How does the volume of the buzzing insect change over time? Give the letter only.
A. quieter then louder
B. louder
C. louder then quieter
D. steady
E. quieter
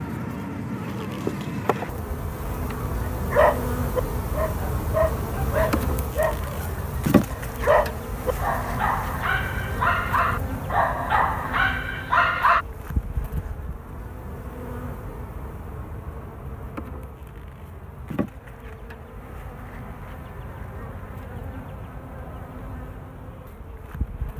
E.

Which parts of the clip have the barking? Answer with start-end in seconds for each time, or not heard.
3.1-12.7.